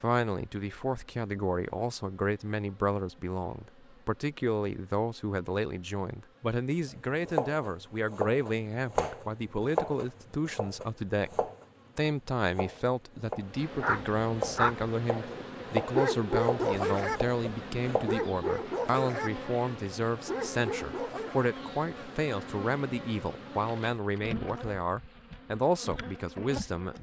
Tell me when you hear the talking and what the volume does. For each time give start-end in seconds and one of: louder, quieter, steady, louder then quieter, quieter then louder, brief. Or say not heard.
0.0-26.9 steady.